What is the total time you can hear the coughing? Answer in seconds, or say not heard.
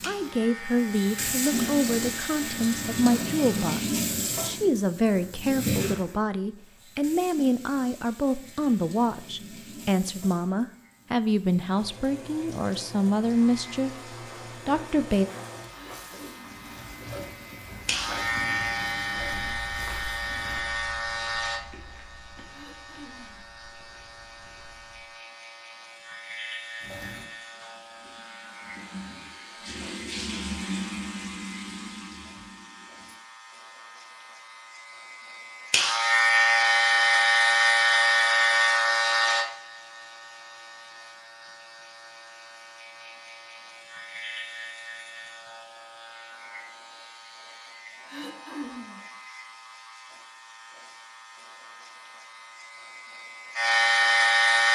3 s.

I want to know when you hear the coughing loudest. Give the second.
49 s.